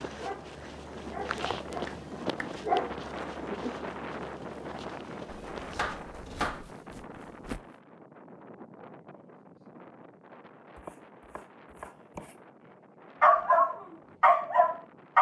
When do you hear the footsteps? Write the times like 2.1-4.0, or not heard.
0.0-7.7.